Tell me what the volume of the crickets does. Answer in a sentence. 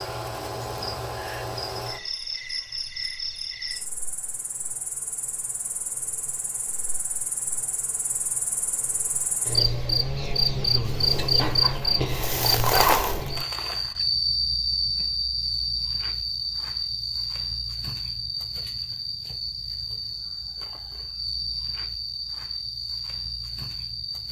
The volume of the crickets goes up, then down.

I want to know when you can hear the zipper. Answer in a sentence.
You can hear the zipper from 11.3 to 13.2 s.